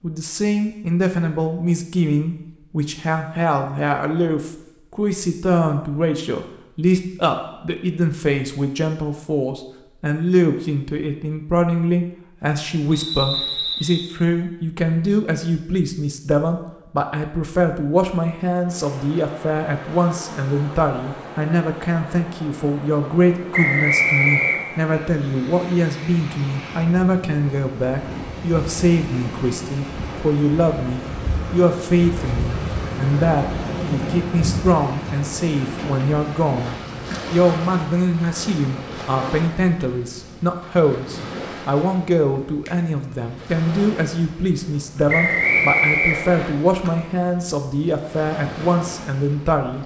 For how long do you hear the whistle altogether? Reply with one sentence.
You can hear the whistle for 4 seconds altogether.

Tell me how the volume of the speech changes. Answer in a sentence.
The loudness of the speech stays about the same.